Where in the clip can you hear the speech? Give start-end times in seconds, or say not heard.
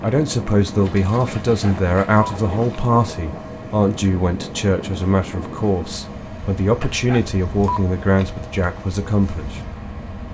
0.0-9.6.